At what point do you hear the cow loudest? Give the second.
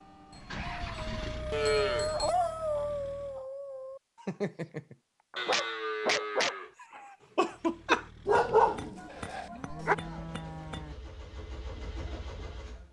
2 s.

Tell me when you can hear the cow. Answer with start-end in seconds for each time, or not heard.
0.3-2.4, 5.3-6.7, 8.9-10.9.